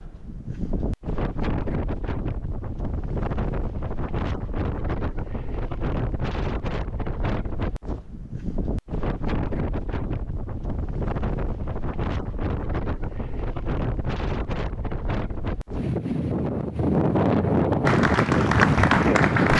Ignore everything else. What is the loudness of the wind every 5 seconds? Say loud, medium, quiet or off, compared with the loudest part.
medium, medium, medium, loud.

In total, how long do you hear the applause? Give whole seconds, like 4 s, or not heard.
2 s.